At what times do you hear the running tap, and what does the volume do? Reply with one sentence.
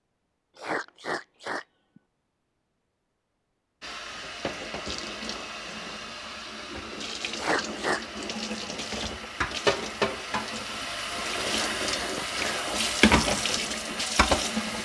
The running tap can be heard from 3.8 to 14.8 s, getting louder.